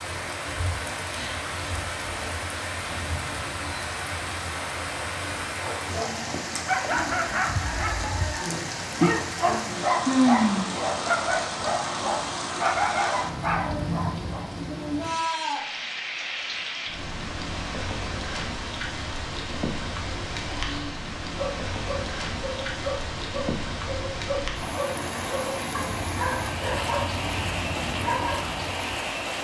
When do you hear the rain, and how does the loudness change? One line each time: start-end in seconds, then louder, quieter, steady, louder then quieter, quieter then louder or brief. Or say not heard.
0.0-29.3 steady.